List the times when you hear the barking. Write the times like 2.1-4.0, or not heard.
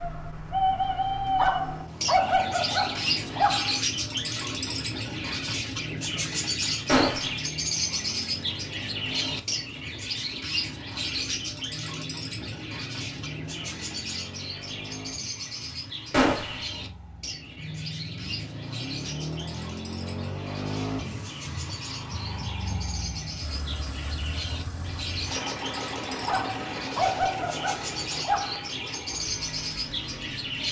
1.4-3.8, 26.2-28.7.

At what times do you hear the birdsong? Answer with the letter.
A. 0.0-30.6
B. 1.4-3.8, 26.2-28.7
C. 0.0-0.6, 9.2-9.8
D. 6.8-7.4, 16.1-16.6
A.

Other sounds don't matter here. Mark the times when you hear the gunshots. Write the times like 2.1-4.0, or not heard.
6.8-7.4, 16.1-16.6.